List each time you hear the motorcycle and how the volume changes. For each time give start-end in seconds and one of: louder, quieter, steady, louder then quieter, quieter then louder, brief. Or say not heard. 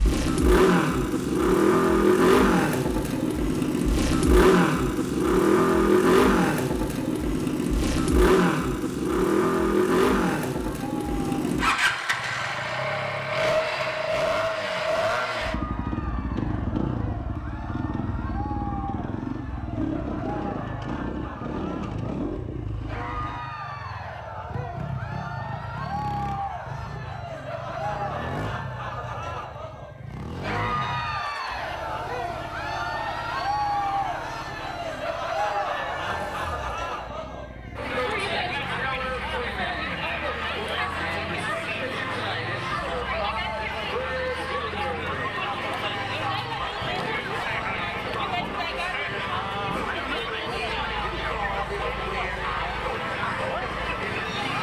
0.0-54.5 quieter.